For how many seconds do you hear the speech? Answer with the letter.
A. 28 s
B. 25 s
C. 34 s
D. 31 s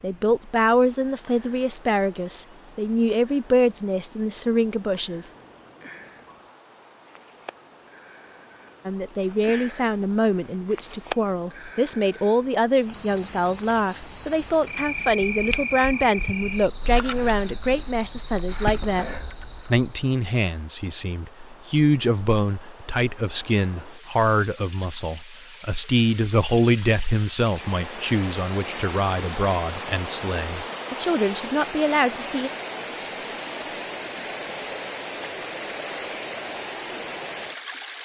A.